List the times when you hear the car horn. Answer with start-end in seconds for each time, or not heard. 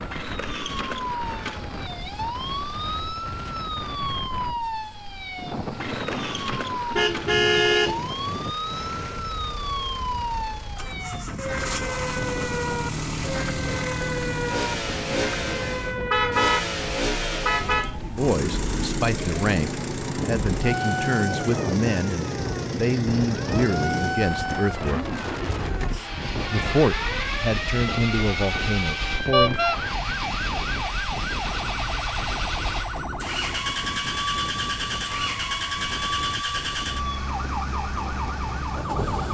6.5-8.0, 16.1-17.9, 29.3-29.8.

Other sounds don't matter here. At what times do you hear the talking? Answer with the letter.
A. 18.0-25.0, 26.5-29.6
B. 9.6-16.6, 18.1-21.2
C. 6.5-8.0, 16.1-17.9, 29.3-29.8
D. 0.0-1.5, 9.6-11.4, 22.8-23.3
A.